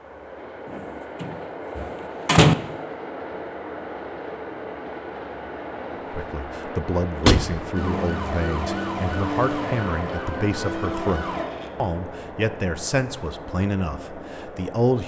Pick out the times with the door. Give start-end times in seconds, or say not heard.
0.7-2.5, 7.2-7.7, 10.6-11.7.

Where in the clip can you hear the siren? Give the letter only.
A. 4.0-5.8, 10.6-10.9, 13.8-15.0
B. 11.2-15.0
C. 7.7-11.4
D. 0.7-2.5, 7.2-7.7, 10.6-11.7
C.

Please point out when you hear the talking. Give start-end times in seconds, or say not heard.
6.1-15.0.